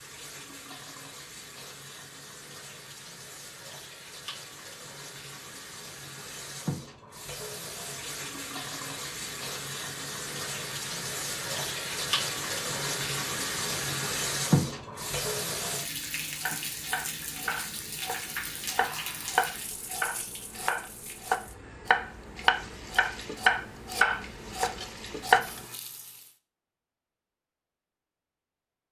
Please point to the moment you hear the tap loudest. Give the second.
14 s.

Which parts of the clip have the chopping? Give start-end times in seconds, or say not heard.
16.4-25.6.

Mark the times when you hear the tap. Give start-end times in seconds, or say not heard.
0.0-26.4.